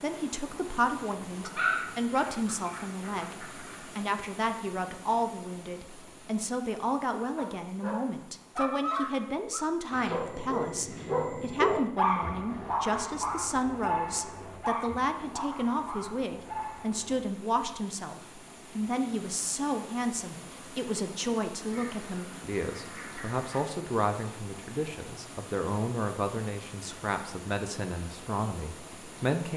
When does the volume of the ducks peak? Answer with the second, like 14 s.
2 s.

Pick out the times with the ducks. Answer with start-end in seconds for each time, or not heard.
1.4-3.9, 21.6-23.6.